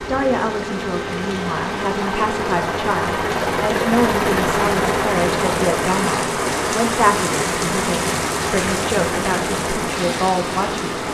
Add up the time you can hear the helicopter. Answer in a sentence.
The helicopter can be heard for 11 seconds in total.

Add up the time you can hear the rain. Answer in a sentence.
The rain can be heard for 11 seconds in total.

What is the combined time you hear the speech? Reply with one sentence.
The speech can be heard for 11 seconds in total.